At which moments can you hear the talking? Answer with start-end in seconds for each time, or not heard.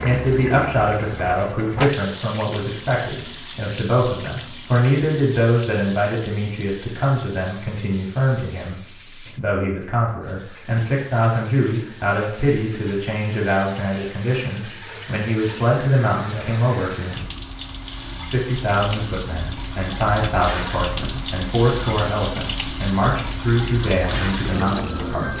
0.0-17.2, 18.3-25.3.